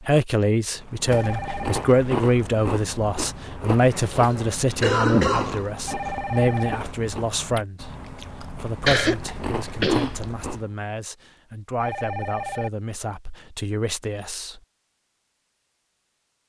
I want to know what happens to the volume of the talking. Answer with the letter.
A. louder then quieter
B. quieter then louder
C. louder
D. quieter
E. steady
D.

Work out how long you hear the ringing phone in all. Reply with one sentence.
You can hear the ringing phone for 3 seconds altogether.